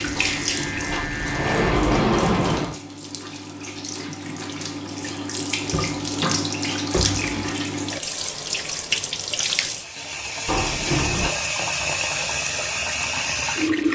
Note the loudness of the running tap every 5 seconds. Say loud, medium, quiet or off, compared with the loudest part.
medium, loud, loud.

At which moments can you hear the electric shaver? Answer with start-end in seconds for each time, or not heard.
0.2-1.8.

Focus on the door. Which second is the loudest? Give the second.
2 s.